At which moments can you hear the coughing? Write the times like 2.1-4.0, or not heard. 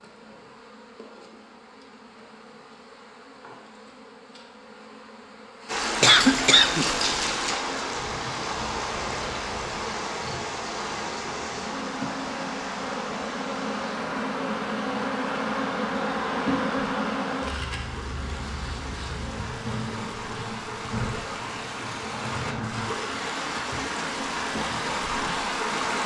6.0-7.2.